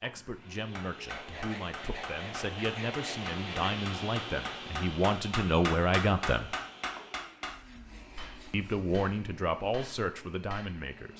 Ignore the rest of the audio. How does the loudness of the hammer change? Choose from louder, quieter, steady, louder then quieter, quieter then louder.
louder then quieter.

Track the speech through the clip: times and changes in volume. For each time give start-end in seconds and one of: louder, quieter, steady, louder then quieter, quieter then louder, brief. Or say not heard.
0.0-6.5 louder
8.5-11.1 brief.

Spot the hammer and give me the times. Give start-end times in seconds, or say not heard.
0.8-10.8.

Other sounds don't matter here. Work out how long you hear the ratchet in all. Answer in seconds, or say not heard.
not heard.